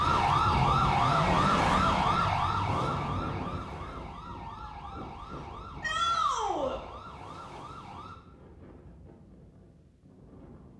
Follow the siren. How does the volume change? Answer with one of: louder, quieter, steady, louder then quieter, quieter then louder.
quieter.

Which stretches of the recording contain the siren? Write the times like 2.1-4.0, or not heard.
0.0-8.2.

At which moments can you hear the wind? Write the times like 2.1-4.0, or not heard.
0.0-10.7.